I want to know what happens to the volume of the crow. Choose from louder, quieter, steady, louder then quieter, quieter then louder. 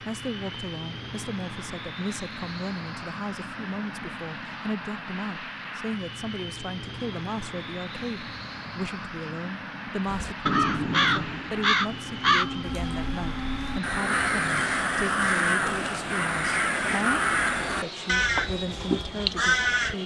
steady.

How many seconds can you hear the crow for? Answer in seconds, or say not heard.
10 s.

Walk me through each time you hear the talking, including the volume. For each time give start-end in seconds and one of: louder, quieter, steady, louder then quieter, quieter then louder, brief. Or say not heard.
0.1-20.0 steady.